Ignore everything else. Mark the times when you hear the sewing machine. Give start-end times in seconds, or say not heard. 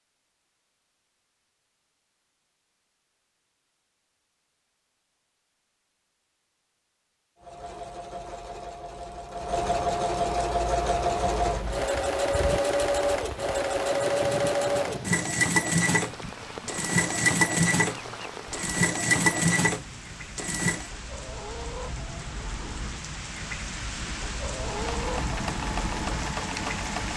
7.4-20.9, 24.6-27.1.